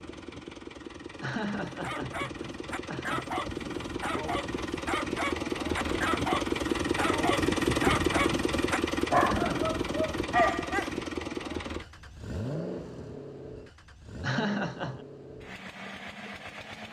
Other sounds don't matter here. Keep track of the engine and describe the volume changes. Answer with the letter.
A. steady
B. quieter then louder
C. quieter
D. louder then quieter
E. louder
D.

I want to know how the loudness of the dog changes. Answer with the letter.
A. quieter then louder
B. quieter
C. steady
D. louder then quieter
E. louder
E.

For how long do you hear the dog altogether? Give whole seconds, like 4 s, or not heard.
9 s.